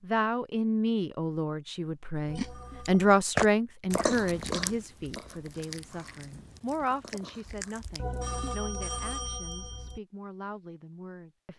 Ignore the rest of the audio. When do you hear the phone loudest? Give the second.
8 s.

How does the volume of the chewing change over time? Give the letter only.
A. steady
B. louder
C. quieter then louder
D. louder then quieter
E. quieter
C.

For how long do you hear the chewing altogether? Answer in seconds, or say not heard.
6 s.